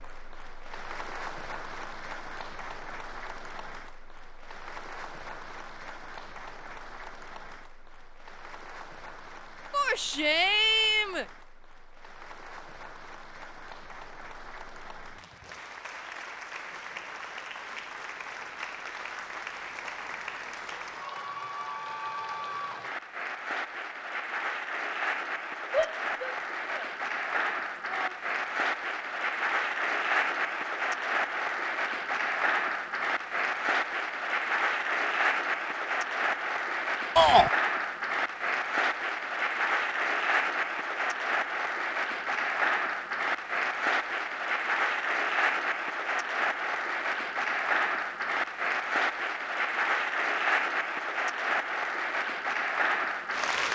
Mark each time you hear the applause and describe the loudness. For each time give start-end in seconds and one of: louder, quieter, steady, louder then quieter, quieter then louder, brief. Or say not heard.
0.0-53.6 louder.